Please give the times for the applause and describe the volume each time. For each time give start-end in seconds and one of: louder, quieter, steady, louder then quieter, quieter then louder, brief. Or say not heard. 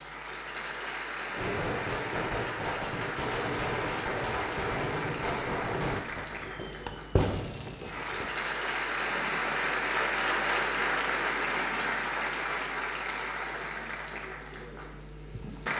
0.0-15.7 louder then quieter.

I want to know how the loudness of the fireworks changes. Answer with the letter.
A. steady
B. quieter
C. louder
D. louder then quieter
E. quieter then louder
A.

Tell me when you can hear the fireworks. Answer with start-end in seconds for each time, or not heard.
1.4-8.3.